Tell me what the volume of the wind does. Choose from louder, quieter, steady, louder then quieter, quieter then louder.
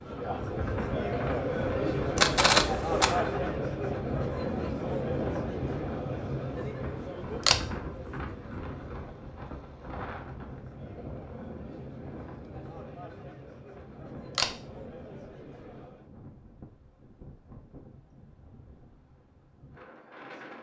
quieter.